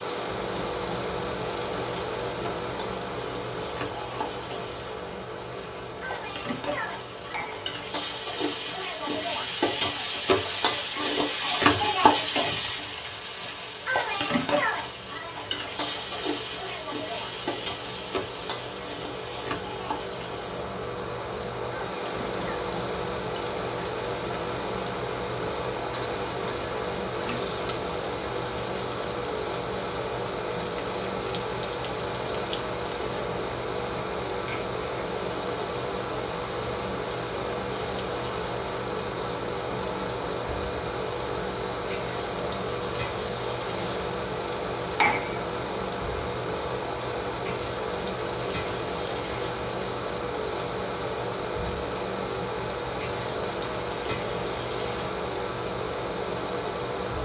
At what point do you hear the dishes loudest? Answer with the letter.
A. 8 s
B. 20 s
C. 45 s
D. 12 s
C.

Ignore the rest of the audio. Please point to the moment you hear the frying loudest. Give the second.
12 s.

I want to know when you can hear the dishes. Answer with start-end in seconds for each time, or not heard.
7.2-7.7, 44.8-45.4.